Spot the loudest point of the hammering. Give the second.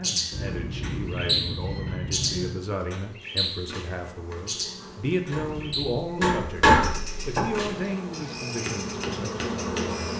7 s.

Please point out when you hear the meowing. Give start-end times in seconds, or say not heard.
0.3-2.6, 5.3-6.0.